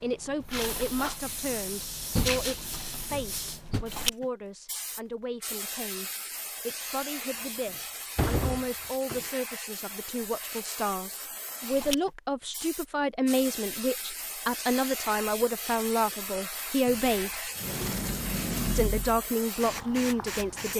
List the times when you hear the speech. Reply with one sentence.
You can hear the speech from 0.0 to 17.5 s and from 18.8 to 20.7 s.